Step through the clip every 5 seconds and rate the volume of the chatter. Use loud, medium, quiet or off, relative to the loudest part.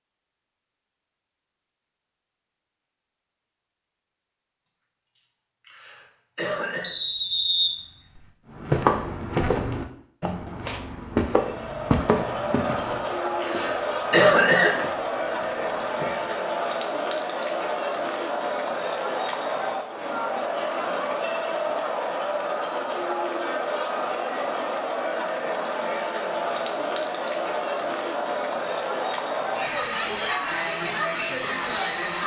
off, off, loud, loud, loud, loud, loud.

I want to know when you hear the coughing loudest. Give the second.
14 s.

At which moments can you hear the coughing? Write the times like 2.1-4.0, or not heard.
4.7-7.0, 12.4-14.8, 28.2-28.9.